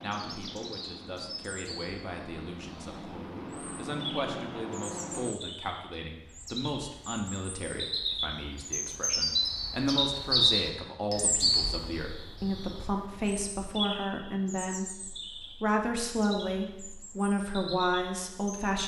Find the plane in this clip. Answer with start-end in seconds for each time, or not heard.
0.0-5.4.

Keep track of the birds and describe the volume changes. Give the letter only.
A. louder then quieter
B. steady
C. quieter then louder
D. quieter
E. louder
A.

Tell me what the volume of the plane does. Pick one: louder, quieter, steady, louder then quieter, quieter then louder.
louder.